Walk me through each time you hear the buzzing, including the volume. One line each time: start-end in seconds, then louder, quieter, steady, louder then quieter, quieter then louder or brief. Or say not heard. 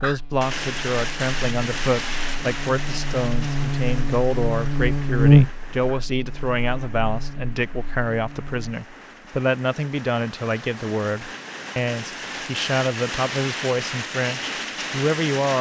0.0-8.8 louder then quieter.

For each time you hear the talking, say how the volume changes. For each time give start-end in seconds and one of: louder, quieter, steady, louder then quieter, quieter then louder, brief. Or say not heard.
0.0-15.5 steady.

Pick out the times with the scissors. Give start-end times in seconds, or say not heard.
not heard.